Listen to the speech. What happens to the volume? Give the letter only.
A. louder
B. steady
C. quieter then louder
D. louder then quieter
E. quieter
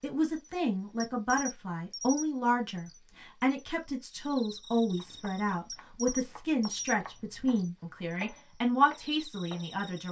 B.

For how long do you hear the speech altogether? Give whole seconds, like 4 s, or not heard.
10 s.